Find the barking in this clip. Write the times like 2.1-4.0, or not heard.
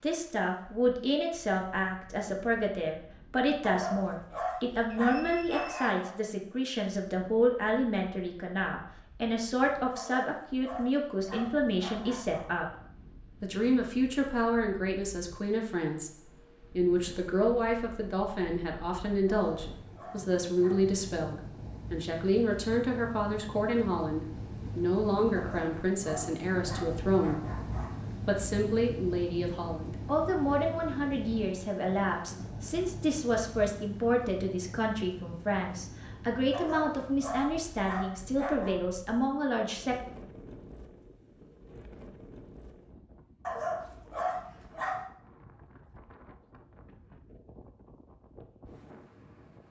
3.6-6.2, 9.9-12.4, 19.3-20.9, 25.4-28.0, 36.5-38.8, 43.5-45.0.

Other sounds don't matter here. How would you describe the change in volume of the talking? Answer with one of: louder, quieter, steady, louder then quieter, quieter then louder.
steady.